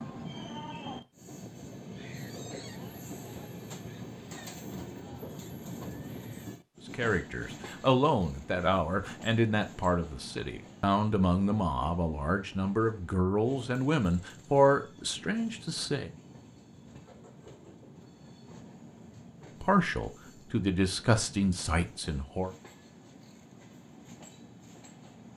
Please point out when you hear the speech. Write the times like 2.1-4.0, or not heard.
6.9-16.1, 19.6-22.6.